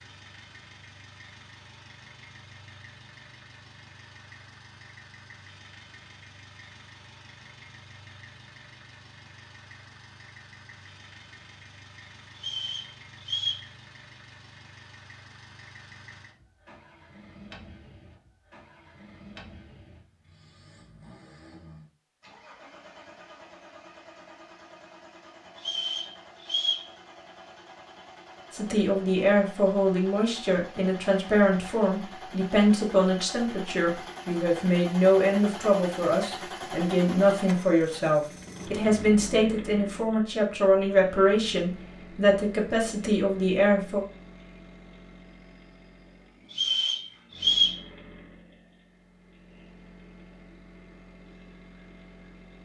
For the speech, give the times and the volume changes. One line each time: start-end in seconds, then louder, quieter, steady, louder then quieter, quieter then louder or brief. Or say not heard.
28.5-44.0 steady.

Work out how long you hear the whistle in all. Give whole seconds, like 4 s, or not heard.
4 s.